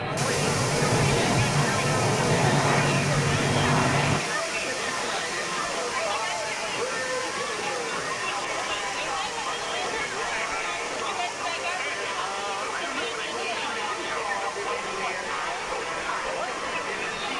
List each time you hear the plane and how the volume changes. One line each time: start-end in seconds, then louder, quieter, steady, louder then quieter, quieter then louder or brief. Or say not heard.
0.0-4.2 steady.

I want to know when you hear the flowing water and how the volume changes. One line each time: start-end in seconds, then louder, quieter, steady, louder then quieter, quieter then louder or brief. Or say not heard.
0.0-17.3 quieter.